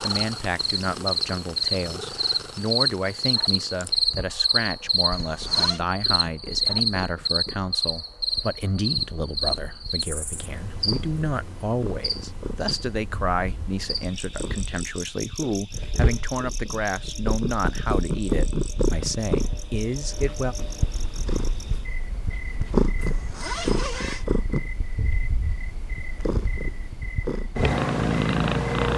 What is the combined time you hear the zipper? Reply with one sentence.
The zipper can be heard for 2 seconds in total.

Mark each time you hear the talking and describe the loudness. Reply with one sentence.
You can hear the talking from 0.0 to 20.6 s, at a steady volume.